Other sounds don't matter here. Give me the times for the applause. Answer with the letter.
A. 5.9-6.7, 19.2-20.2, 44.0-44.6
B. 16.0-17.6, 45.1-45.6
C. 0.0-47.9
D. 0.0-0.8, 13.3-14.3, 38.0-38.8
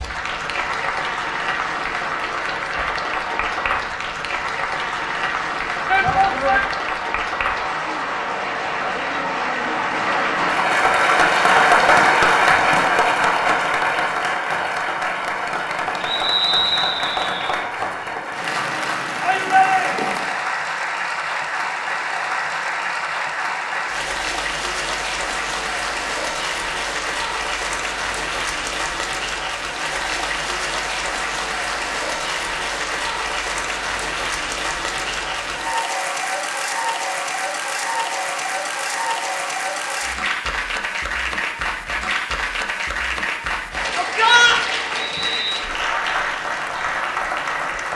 C.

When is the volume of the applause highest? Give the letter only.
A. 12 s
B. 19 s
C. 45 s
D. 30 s
A.